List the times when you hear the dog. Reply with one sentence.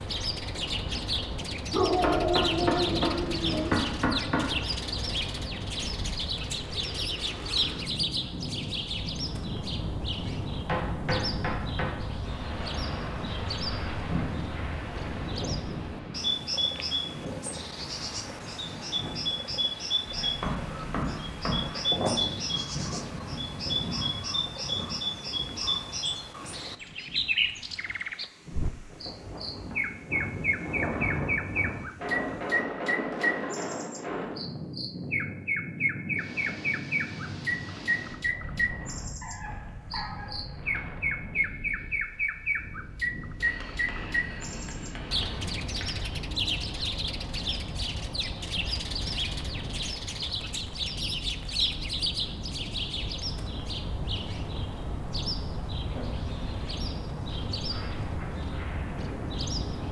You can hear the dog from 1.7 to 3.7 s and from 39.2 to 40.3 s.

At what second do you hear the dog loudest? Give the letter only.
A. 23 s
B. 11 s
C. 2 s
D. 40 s
C.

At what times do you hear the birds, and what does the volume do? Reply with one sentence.
The birds can be heard from 0.0 to 59.8 s, at a steady volume.